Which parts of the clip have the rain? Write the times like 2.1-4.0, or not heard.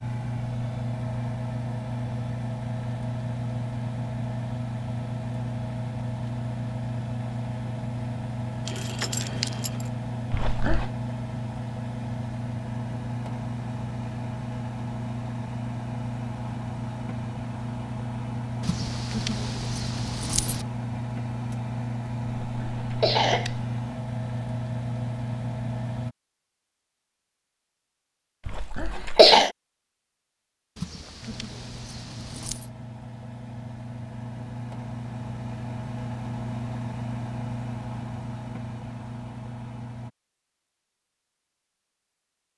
not heard.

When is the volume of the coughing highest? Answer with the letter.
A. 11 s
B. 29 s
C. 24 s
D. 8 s
B.